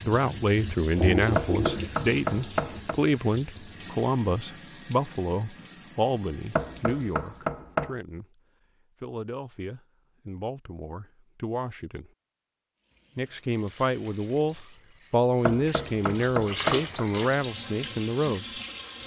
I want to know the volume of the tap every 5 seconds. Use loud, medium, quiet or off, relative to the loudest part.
loud, quiet, quiet, loud.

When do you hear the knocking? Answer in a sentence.
You can hear the knocking from 1.4 to 3.0 s, from 6.5 to 8.0 s and from 15.4 to 17.1 s.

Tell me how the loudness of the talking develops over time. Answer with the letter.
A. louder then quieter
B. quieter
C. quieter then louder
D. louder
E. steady
C.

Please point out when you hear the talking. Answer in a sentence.
You can hear the talking from 0.0 to 8.2 s, from 9.0 to 12.1 s and from 13.2 to 18.4 s.